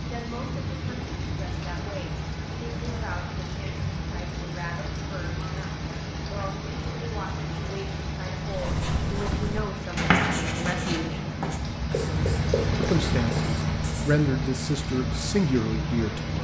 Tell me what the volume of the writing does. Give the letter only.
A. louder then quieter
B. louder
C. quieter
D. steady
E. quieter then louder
A.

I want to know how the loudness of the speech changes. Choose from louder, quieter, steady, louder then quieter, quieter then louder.
louder.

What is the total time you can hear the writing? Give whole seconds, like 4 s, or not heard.
6 s.